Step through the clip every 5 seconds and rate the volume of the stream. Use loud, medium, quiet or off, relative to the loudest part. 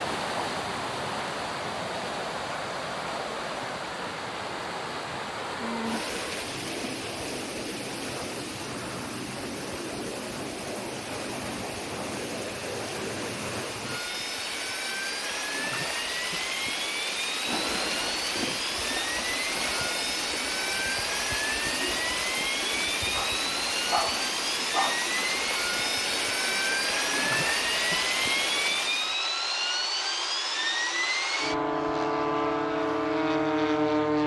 loud, medium, medium, loud, loud, loud, off.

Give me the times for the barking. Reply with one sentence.
You can hear the barking from 23.1 to 25.1 s.